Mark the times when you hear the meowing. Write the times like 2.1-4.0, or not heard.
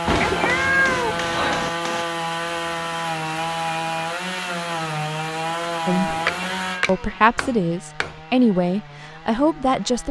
0.1-1.7, 6.0-7.3.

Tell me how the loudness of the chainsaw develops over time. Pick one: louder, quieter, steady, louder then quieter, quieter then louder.
quieter.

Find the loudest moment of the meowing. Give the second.
1 s.